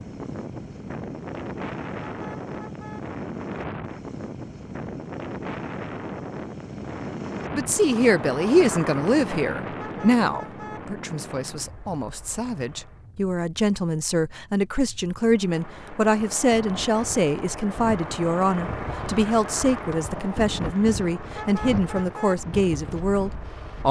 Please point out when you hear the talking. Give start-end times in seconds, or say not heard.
7.5-23.8.